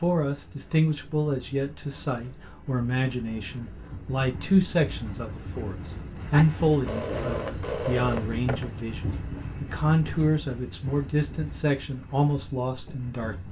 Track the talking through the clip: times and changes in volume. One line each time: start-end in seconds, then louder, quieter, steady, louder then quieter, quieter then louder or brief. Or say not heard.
0.0-13.4 steady.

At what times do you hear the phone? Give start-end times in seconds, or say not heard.
6.3-8.8.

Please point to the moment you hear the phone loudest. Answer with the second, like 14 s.
8 s.